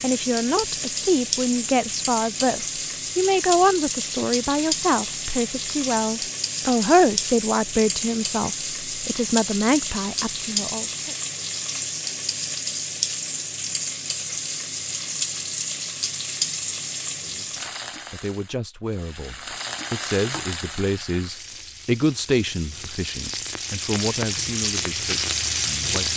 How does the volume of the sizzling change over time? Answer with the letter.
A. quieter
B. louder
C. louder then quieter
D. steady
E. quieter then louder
D.